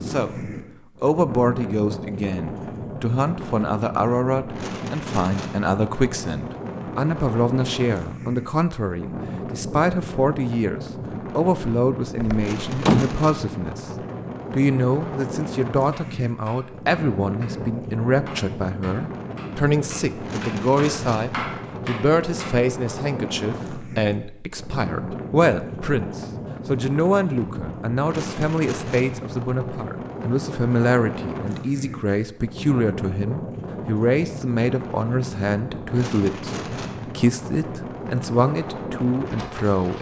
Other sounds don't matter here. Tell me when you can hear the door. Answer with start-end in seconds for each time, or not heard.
12.2-13.2.